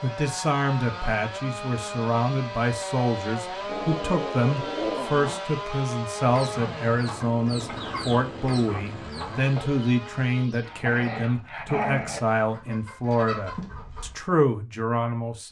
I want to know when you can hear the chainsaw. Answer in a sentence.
The chainsaw can be heard from 0.0 to 10.5 s.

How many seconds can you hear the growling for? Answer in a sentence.
You can hear the growling for 3 seconds altogether.